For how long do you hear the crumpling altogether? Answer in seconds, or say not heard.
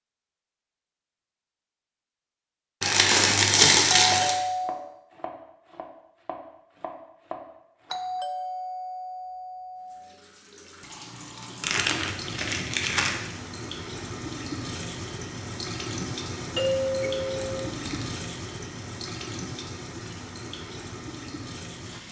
4 s.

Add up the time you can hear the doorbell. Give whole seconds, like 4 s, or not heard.
4 s.